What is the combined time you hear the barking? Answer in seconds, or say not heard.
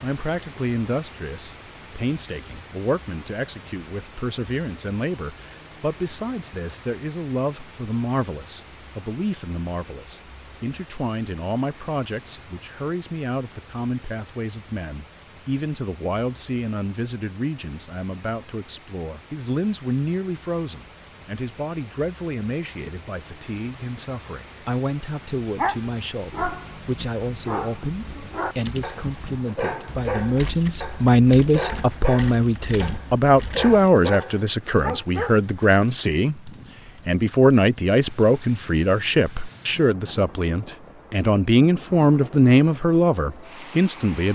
10 s.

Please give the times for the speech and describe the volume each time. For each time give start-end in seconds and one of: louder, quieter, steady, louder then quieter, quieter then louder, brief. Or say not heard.
0.0-44.3 louder.